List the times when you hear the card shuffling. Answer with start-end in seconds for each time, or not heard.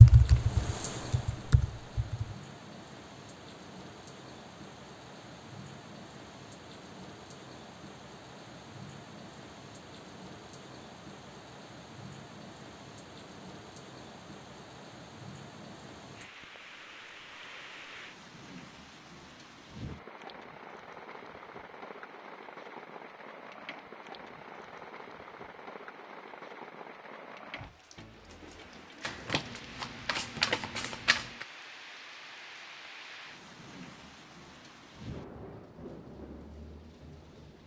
29.0-31.4.